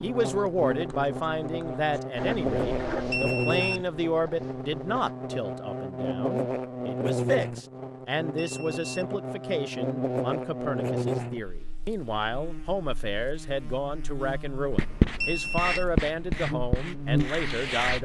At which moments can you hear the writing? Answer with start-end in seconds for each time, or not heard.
0.2-5.0, 14.7-18.0.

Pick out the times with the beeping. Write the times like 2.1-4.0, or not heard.
3.1-3.9, 8.3-9.2, 15.2-15.8.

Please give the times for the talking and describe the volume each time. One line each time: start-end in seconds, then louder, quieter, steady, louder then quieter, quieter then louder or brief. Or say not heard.
0.0-18.0 steady.